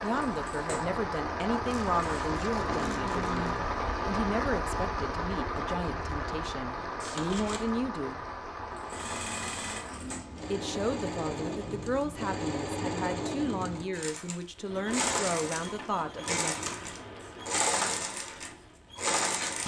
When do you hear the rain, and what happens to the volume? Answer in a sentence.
The rain can be heard from 0.0 to 19.6 s, getting quieter.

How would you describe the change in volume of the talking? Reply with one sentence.
The volume of the talking stays about the same.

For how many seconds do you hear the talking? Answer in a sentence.
You can hear the talking for 14 seconds altogether.